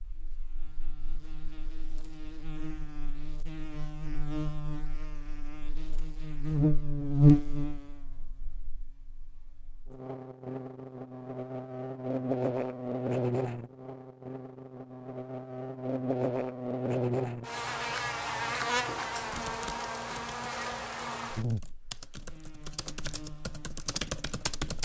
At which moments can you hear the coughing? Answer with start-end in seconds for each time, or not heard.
not heard.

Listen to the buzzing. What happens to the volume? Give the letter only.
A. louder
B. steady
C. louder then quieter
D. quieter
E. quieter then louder
C.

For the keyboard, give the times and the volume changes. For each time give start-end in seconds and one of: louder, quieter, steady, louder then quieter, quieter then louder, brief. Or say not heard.
19.2-24.7 quieter then louder.